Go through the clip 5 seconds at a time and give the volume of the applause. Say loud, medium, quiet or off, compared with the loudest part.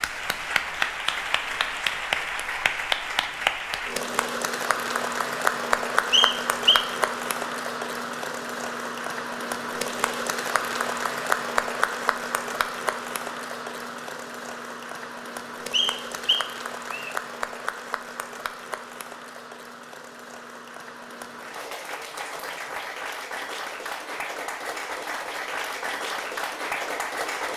loud, loud, loud, medium, medium, loud.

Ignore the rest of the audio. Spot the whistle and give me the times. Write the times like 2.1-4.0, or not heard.
6.1-6.9, 15.7-17.1.